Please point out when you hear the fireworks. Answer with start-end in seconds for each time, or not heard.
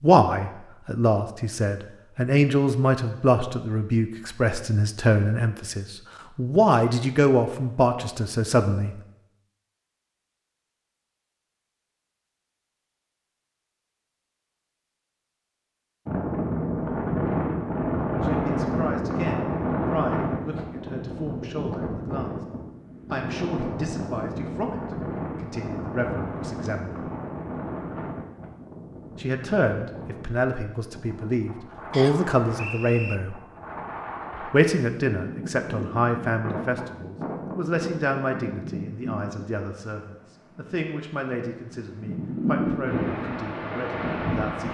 not heard.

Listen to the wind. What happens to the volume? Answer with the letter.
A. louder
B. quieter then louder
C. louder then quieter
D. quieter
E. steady
B.